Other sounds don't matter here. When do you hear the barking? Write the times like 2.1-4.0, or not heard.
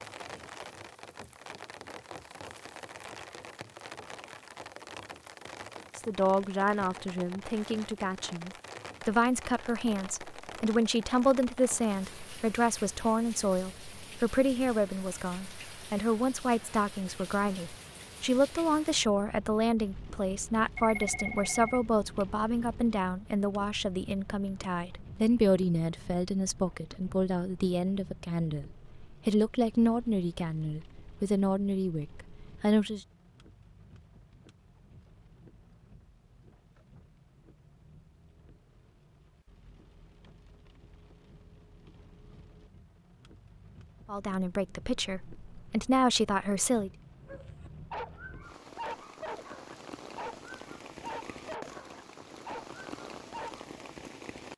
47.2-53.7.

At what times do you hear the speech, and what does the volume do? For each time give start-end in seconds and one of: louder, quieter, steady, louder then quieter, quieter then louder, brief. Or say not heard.
6.0-33.0 steady
44.0-46.9 brief.